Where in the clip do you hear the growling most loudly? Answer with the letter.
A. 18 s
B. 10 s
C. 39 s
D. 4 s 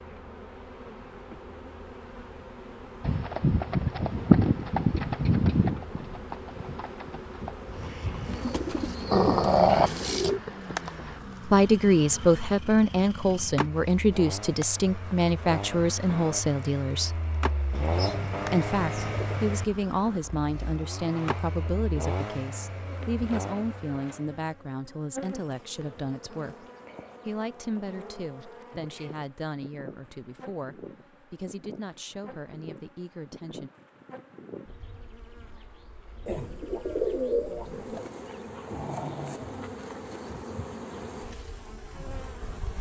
B.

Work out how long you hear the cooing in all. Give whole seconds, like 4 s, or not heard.
6 s.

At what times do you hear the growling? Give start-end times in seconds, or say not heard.
9.1-10.3, 38.2-39.8.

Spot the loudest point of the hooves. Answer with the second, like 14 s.
4 s.